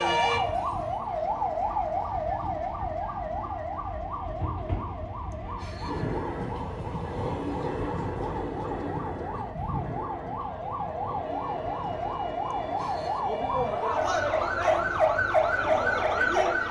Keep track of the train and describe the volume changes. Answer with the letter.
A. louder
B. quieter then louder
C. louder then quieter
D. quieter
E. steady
C.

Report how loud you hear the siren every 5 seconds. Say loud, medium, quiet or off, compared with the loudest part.
medium, quiet, medium, loud.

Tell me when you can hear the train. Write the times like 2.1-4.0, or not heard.
0.0-16.6.